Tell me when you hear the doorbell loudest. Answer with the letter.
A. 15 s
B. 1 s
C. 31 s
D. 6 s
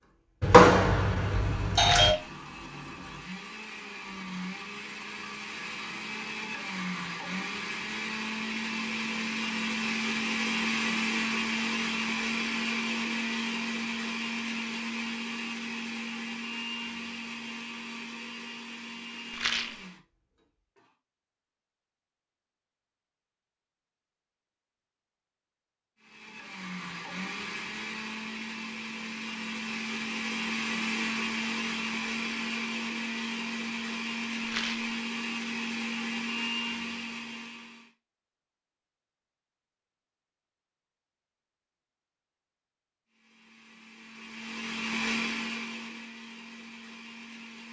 B.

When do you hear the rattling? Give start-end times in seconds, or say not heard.
1.8-2.3, 19.3-19.8, 34.5-34.9.